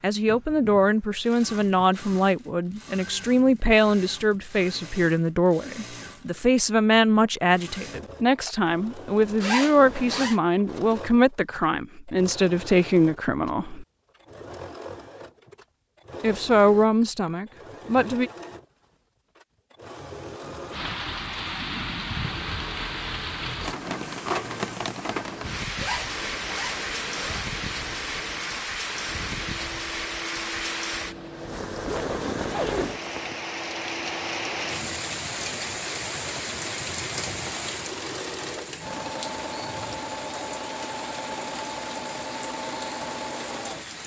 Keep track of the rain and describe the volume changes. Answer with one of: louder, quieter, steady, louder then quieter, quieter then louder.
quieter.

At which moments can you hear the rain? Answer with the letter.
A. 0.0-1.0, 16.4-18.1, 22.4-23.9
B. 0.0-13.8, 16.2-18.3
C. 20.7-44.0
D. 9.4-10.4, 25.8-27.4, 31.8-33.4
C.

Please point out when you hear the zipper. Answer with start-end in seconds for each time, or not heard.
9.4-10.4, 25.8-27.4, 31.8-33.4.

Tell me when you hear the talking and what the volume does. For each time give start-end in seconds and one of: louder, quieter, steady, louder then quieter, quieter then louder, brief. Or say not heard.
0.0-13.8 steady
16.2-18.3 brief.